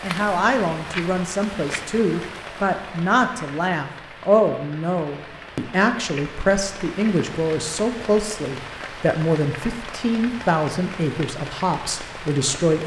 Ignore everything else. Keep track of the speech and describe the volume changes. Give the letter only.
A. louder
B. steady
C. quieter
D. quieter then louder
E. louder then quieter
B.